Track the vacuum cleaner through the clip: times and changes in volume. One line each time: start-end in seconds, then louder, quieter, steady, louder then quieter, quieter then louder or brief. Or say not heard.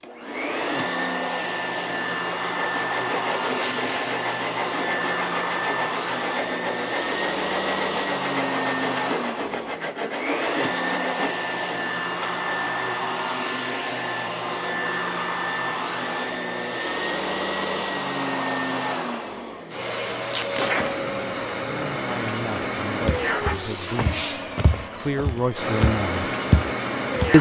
0.0-27.3 steady.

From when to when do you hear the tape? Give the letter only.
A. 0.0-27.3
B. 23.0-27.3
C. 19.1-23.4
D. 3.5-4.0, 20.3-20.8
D.